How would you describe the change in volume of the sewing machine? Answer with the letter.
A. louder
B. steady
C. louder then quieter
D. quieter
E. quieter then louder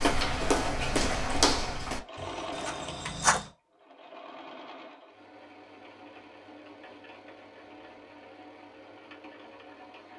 D.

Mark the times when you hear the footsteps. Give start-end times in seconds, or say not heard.
0.0-3.5.